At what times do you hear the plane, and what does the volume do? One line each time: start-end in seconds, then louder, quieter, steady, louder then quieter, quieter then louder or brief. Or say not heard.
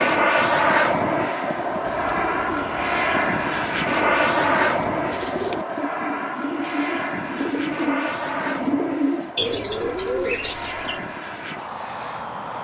0.0-12.5 quieter.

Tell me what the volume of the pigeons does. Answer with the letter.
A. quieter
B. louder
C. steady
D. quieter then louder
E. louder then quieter
B.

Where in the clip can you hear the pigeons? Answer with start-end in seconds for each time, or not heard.
1.8-11.2.